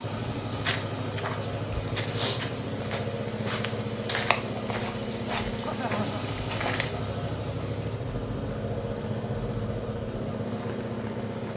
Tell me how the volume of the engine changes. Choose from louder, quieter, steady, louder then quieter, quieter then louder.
steady.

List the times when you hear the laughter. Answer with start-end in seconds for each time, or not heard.
5.6-6.2.